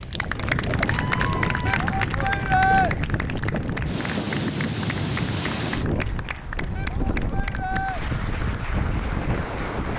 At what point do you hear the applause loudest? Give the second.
1 s.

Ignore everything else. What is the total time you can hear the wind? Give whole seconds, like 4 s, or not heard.
10 s.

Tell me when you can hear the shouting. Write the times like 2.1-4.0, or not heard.
1.7-2.9, 6.8-8.0.